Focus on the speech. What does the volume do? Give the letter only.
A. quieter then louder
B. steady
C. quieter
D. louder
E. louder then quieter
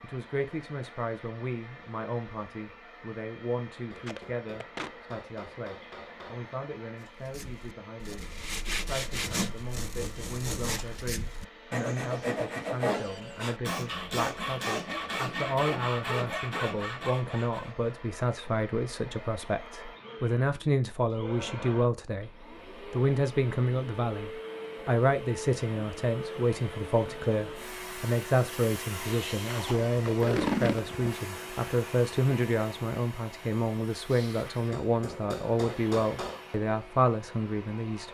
D.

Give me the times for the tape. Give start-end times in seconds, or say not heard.
4.0-4.9, 29.4-31.1.